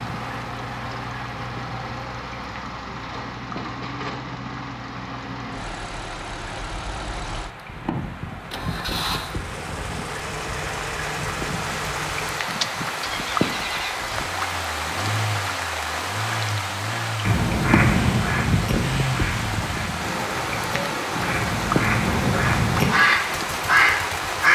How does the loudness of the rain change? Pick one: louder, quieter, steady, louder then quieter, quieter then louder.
louder.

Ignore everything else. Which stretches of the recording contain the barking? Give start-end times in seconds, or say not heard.
not heard.